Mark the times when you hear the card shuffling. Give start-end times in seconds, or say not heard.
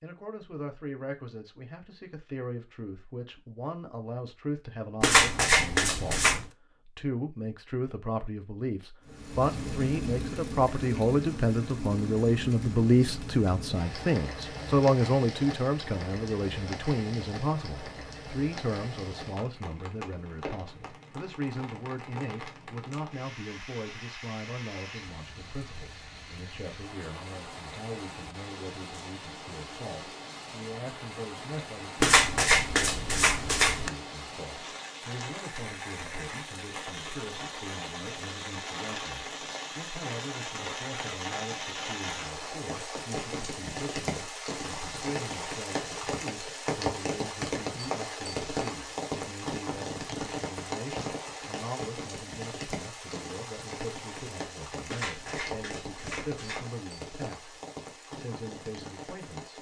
5.0-6.5, 32.0-33.9, 54.9-56.6.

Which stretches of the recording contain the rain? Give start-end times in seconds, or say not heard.
9.1-59.5.